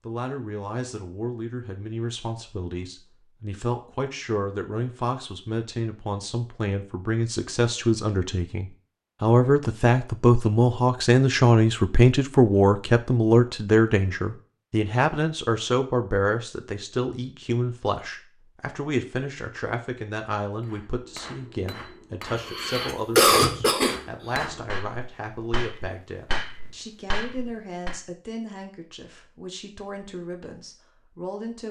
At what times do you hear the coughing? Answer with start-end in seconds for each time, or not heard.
22.4-24.0.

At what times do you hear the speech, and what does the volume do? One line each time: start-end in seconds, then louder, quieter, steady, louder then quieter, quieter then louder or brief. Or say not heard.
0.1-31.6 louder then quieter.